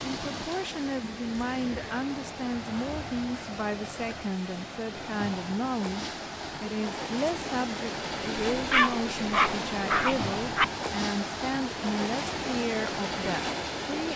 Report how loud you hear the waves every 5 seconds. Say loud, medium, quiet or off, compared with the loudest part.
medium, loud, loud.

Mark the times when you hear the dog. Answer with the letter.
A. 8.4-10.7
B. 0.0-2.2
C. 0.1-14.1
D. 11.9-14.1
A.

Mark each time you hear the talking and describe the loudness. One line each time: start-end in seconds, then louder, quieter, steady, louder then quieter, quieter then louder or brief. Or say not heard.
0.1-14.1 steady.